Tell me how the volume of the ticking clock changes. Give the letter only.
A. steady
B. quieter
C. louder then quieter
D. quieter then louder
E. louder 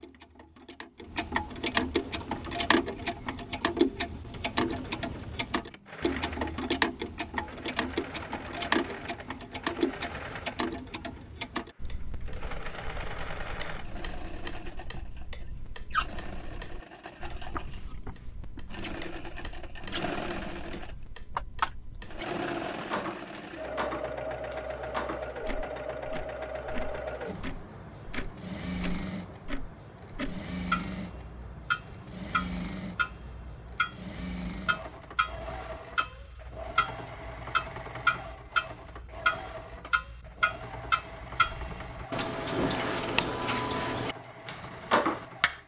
D.